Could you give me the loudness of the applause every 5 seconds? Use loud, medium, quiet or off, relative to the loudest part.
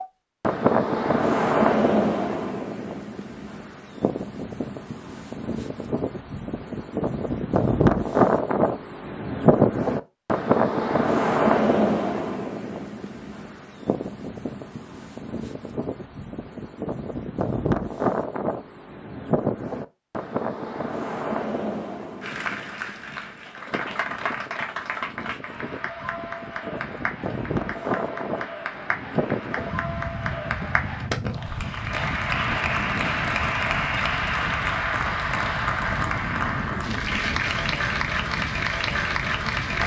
off, off, off, off, medium, medium, loud, loud.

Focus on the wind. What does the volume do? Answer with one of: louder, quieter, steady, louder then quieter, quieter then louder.
quieter.